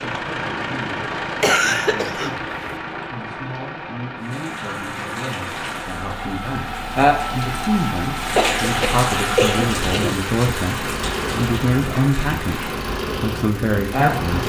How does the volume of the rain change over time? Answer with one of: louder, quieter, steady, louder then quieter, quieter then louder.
louder then quieter.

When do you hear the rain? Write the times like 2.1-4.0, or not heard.
4.2-14.4.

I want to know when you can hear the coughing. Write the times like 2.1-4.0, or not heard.
1.4-2.8, 8.3-10.2.